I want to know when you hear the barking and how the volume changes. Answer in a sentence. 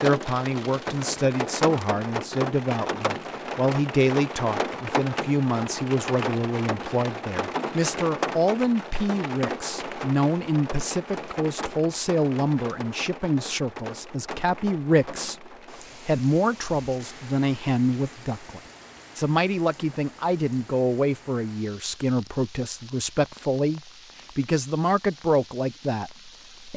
The barking can't be heard in this clip.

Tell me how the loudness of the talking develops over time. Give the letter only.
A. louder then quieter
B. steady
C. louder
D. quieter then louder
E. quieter
B.